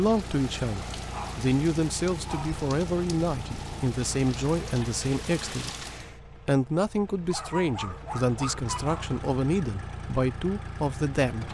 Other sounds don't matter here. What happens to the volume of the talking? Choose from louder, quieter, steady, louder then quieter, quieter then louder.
steady.